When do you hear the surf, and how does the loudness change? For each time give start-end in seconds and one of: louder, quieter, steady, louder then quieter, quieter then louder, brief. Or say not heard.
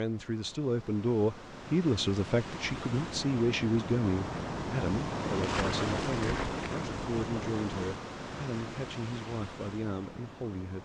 0.0-10.8 louder then quieter.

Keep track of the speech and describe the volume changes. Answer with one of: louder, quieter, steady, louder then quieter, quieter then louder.
quieter.